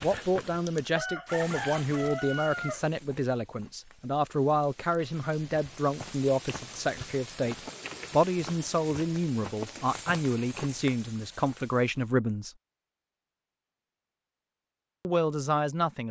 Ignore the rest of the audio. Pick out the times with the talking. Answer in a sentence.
The talking can be heard from 0.0 to 12.5 s and from 15.1 to 16.0 s.